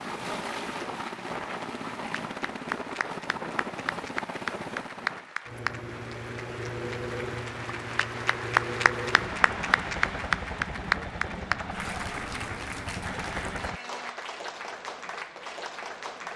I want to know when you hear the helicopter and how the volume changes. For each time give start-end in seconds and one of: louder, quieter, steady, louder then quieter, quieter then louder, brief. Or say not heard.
0.0-13.8 steady.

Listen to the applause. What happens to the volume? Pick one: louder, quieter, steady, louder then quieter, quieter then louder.
louder then quieter.